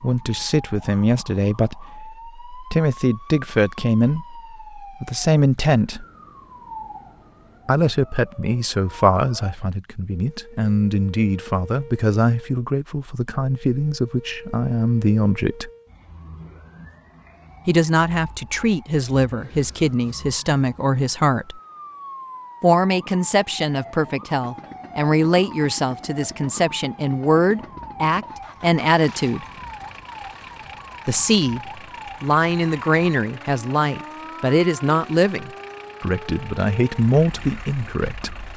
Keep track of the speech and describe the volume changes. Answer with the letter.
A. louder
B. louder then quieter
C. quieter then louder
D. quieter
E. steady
E.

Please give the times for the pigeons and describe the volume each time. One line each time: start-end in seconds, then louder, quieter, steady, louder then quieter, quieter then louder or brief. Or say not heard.
not heard.